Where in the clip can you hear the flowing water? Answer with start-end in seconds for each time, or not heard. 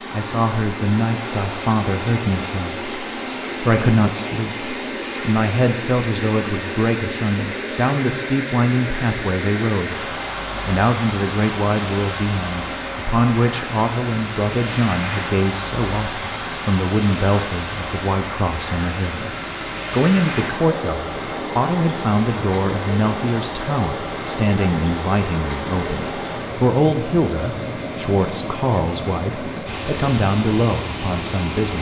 0.0-31.7.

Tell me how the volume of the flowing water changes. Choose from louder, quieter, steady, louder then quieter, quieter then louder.
steady.